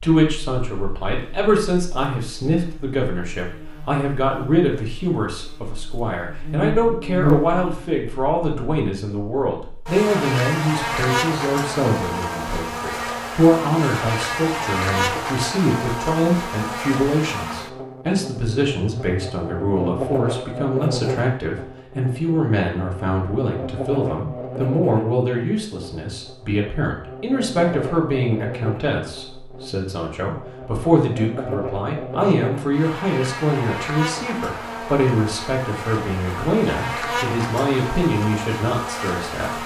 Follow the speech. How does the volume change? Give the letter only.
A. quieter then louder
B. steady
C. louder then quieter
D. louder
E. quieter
B.